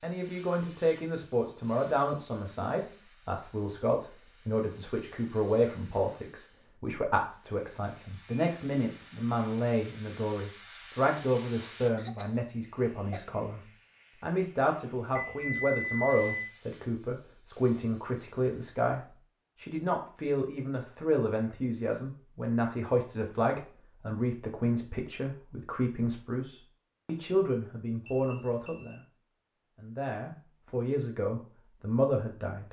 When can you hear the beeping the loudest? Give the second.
16 s.